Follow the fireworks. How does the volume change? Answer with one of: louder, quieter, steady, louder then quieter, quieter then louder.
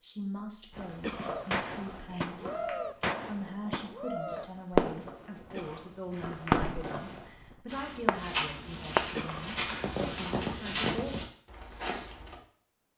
louder then quieter.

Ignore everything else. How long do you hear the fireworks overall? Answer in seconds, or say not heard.
9 s.